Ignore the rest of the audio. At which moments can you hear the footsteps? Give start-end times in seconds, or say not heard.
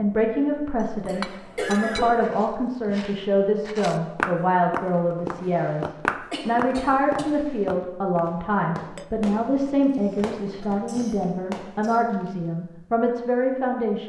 2.2-8.2.